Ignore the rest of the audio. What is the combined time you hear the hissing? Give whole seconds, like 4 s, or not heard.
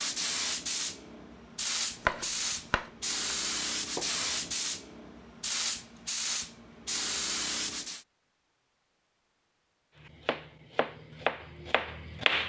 8 s.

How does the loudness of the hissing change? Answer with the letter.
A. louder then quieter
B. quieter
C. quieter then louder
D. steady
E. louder
D.